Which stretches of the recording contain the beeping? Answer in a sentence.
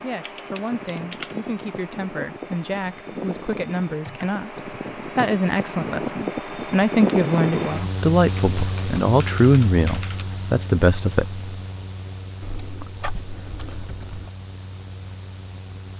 You can't hear the beeping here.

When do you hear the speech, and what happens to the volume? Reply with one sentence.
You can hear the speech from 0.0 to 11.4 s, getting louder.